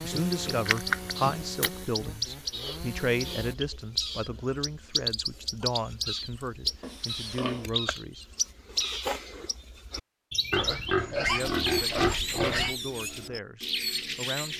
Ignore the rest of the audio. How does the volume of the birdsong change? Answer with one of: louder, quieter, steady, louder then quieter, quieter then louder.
steady.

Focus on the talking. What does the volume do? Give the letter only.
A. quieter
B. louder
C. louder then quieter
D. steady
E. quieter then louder
A.